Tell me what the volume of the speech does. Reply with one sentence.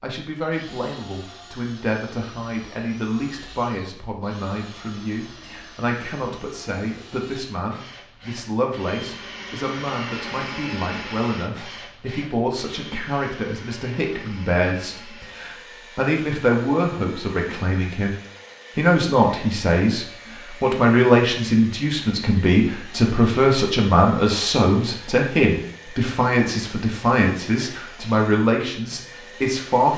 The loudness of the speech goes up.